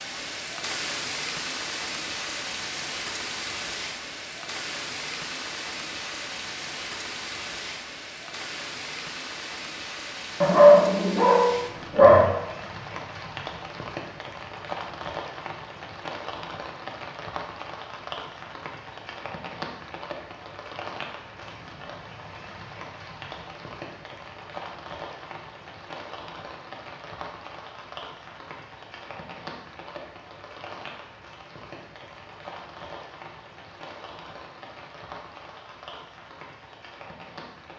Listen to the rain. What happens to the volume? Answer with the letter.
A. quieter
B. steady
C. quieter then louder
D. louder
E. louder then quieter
A.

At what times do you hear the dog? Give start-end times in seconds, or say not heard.
10.4-12.2.